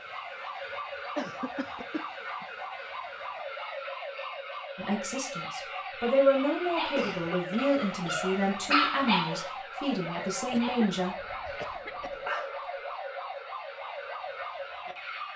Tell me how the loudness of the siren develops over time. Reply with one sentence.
The volume of the siren stays about the same.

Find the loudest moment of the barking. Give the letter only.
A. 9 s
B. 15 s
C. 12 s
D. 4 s
A.